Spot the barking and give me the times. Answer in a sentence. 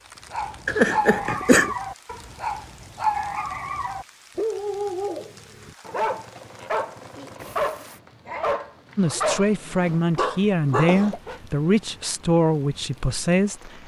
You can hear the barking from 0.3 to 11.4 s.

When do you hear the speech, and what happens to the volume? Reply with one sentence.
The speech can be heard from 8.9 to 13.8 s, at a steady volume.